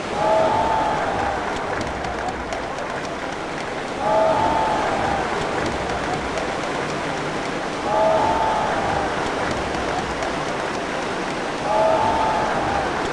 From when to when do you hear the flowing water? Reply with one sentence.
You can hear the flowing water from 0.0 to 13.0 s.